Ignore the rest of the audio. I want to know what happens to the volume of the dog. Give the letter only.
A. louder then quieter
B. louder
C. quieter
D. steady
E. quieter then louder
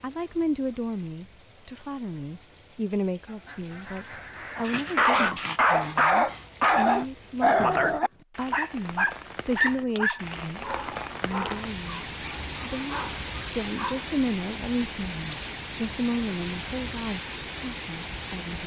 C.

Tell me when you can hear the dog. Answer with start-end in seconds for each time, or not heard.
4.5-14.1.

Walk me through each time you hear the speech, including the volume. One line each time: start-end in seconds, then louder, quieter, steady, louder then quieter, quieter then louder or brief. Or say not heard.
0.0-18.6 steady.